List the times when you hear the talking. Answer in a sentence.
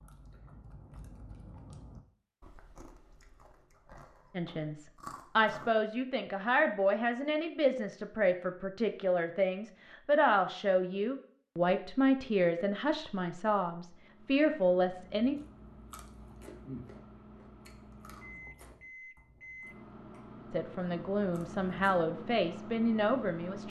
The talking can be heard from 4.3 to 15.3 s and from 20.5 to 23.6 s.